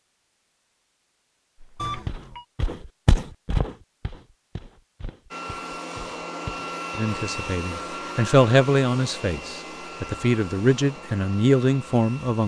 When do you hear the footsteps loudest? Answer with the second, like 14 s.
3 s.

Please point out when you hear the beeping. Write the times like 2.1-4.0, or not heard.
1.8-2.5.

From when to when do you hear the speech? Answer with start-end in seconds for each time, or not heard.
7.0-12.4.